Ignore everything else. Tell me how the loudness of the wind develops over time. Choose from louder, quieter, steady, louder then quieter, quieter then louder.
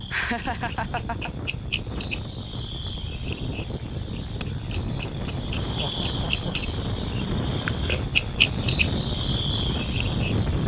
louder.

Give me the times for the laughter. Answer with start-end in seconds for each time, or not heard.
0.1-1.3, 5.7-6.6.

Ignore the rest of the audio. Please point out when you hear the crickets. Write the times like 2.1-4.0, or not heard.
0.0-10.6.